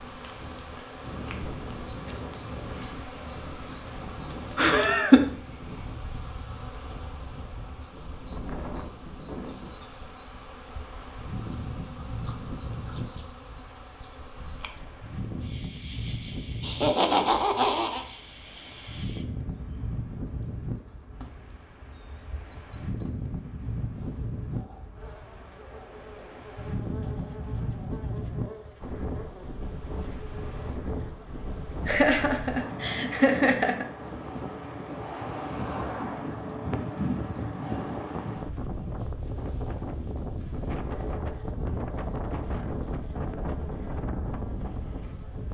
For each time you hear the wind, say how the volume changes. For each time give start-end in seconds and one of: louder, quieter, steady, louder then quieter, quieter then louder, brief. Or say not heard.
0.0-45.4 louder.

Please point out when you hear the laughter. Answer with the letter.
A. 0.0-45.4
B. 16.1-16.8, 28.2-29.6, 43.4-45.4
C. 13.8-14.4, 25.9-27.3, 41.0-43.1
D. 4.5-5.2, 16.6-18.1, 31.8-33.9
D.